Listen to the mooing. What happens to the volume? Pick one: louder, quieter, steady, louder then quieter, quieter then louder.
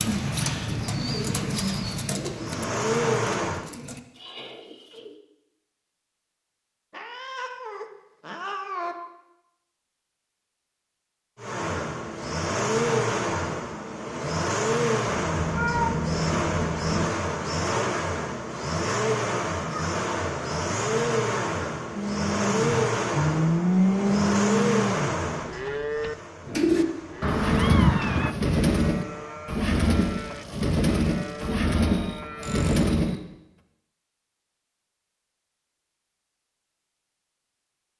quieter.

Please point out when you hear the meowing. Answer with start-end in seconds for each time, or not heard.
6.9-8.9, 15.1-17.1, 27.2-28.4.